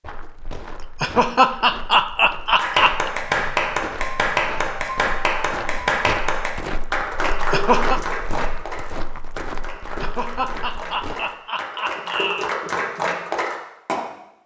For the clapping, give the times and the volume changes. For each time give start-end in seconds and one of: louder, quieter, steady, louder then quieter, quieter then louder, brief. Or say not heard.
2.5-14.0 quieter then louder.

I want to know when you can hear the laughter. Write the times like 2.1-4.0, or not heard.
1.0-3.1, 7.3-8.0, 10.0-12.5.